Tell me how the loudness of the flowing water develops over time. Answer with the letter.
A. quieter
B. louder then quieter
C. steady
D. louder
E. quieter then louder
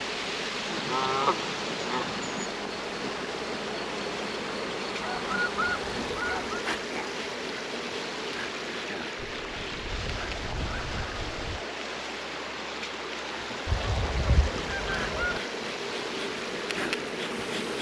C.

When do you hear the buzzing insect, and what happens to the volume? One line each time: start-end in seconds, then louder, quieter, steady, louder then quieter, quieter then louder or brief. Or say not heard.
0.0-17.7 quieter then louder.